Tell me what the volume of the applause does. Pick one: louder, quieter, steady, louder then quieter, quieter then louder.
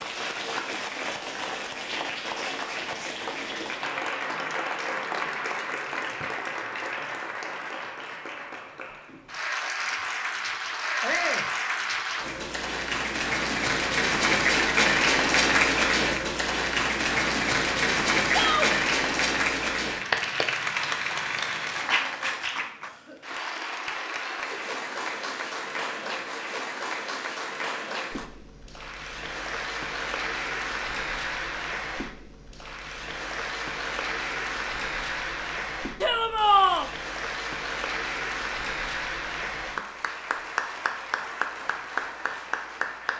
louder then quieter.